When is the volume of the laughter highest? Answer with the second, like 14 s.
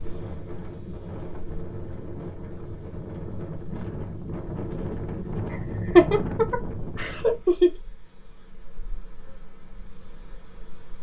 6 s.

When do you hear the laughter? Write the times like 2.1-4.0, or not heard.
5.5-7.7.